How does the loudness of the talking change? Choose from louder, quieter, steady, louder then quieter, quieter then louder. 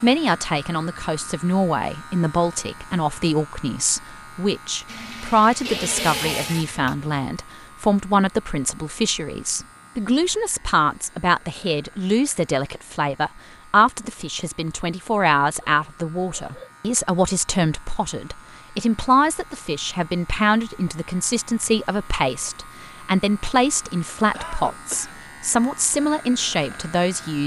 steady.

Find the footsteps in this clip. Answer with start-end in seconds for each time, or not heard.
not heard.